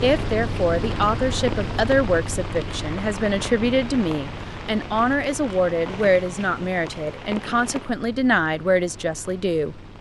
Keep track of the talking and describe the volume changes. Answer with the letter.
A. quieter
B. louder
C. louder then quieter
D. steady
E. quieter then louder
D.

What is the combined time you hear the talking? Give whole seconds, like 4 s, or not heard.
10 s.